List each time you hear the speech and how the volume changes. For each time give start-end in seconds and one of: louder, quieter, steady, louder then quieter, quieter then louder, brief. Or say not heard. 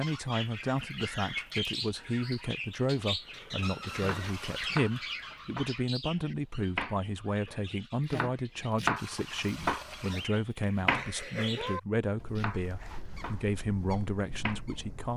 0.0-15.1 steady.